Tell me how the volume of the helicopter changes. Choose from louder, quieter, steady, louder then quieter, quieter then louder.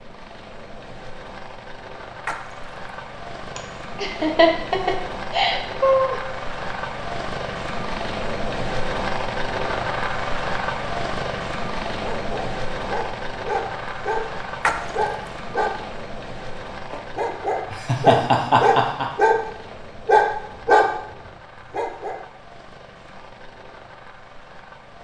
louder then quieter.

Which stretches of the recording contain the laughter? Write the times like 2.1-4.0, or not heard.
3.5-6.2, 17.7-19.1.